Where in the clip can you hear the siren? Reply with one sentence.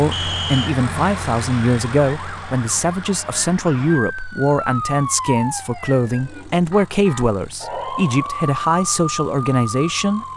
The siren can be heard from 0.0 to 10.3 s.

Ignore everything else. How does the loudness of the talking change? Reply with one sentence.
The volume of the talking stays about the same.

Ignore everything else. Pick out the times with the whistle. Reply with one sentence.
You can hear the whistle from 0.1 to 0.7 s.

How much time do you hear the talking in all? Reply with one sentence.
The talking can be heard for 10 seconds in total.